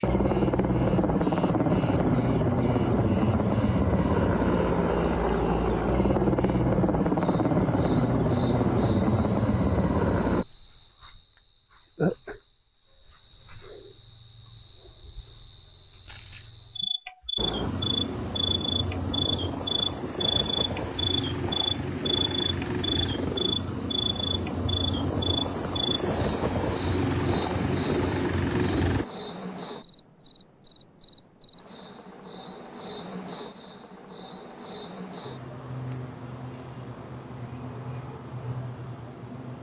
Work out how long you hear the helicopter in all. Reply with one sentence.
You can hear the helicopter for 22 seconds altogether.